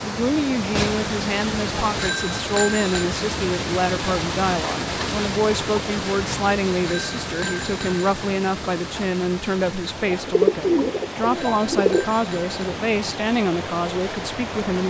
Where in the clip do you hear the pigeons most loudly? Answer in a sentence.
The loudest moment of the pigeons is at 11 seconds.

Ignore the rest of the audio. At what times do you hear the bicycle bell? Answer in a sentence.
The bicycle bell can be heard from 1.9 to 3.0 s, from 6.8 to 8.1 s and from 11.3 to 12.6 s.